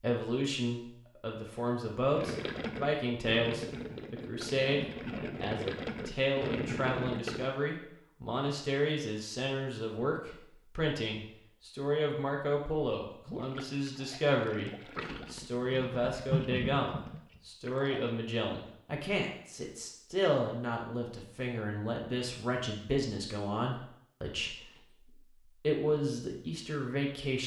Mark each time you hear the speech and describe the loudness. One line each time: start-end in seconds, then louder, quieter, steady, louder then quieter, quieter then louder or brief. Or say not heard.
0.0-14.7 steady
15.3-27.4 steady.